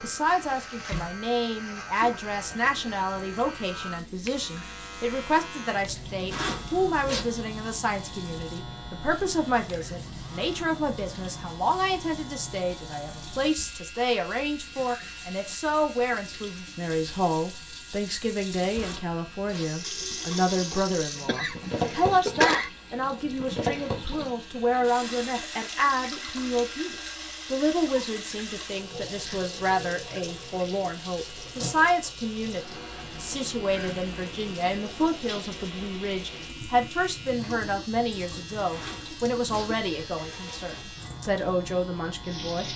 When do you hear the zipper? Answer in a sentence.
You can hear the zipper from 6.3 to 7.2 s, from 18.7 to 20.9 s and from 38.7 to 41.0 s.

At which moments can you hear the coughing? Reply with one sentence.
The coughing can be heard from 21.2 to 22.7 s.